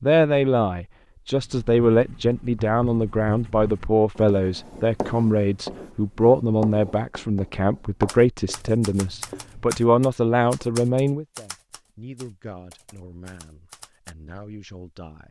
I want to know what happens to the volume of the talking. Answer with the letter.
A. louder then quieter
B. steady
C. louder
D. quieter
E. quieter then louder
D.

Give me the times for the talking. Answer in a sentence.
The talking can be heard from 0.0 to 15.2 s.